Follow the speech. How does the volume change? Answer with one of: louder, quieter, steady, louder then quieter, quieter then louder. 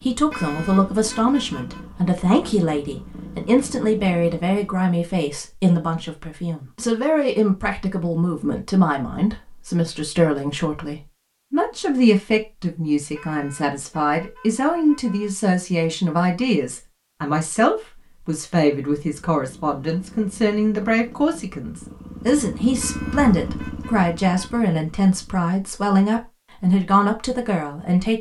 steady.